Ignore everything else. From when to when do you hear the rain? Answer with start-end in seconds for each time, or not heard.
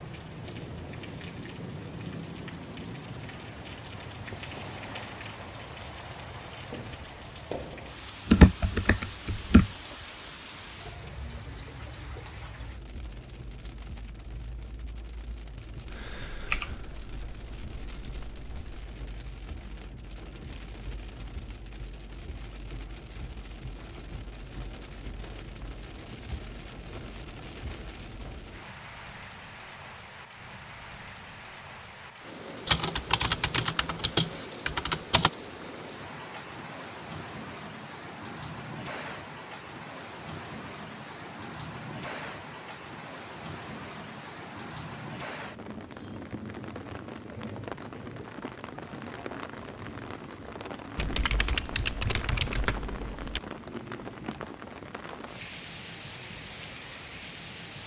0.0-57.8.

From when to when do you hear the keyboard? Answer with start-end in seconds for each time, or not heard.
8.2-9.8, 15.8-18.9, 32.6-35.3, 51.0-53.4.